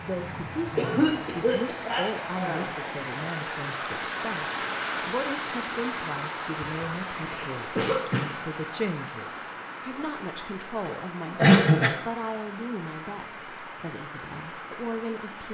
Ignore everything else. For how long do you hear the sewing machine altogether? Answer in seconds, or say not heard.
not heard.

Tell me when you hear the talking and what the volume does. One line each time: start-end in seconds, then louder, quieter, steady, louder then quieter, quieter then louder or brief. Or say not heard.
0.0-15.4 steady.